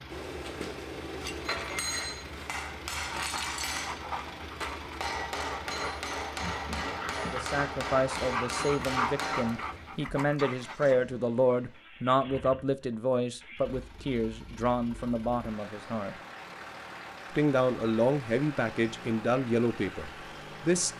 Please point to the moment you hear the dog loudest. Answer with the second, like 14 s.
9 s.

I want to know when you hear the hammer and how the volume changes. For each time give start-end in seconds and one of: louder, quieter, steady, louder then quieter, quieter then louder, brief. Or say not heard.
0.1-9.8 steady.